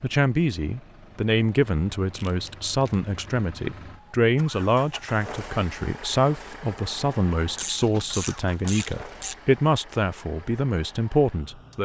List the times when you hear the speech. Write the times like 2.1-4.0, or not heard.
0.0-11.8.